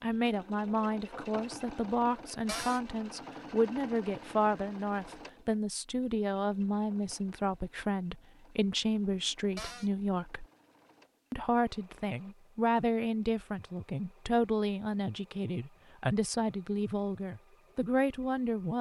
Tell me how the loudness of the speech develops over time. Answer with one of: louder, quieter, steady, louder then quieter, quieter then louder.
steady.